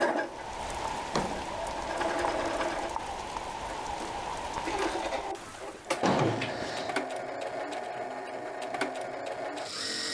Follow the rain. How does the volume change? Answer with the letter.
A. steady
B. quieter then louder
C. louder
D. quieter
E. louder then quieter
A.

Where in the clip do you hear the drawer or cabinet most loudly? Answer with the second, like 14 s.
6 s.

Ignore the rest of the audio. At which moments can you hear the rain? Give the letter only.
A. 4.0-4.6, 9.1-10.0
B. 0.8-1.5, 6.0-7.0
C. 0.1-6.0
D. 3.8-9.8
C.